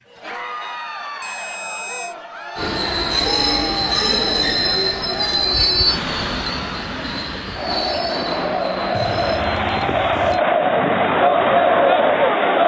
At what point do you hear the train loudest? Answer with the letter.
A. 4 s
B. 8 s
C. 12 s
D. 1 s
A.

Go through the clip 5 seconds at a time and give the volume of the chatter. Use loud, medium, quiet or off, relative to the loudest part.
quiet, medium, loud.